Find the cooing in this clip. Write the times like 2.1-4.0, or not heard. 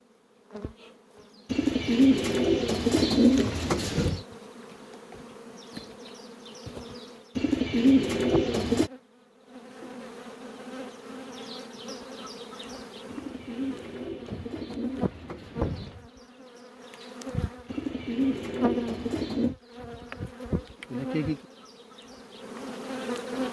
1.5-4.2, 7.3-8.9, 13.1-16.1, 17.6-19.6.